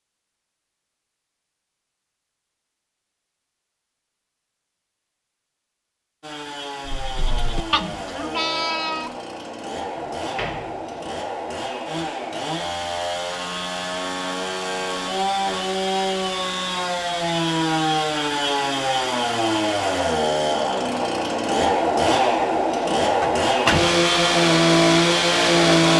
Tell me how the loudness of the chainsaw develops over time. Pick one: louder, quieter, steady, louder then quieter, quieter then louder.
louder.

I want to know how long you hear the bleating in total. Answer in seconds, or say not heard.
2 s.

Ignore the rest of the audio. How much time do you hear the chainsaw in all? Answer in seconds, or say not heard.
20 s.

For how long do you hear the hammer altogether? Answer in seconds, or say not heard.
not heard.